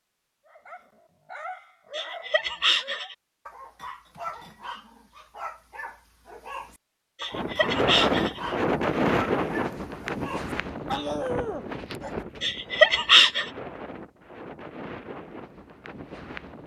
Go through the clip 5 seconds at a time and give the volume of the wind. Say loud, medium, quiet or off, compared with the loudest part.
off, loud, medium, quiet.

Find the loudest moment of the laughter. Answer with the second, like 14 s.
13 s.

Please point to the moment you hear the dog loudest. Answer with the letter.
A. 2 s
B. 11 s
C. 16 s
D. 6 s
B.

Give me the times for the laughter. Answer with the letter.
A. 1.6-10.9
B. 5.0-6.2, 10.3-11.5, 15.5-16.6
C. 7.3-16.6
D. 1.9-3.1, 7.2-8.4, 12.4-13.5
D.